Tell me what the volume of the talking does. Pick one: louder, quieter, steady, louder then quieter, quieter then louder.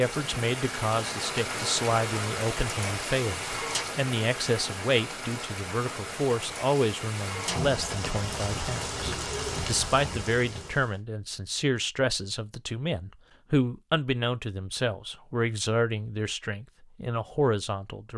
steady.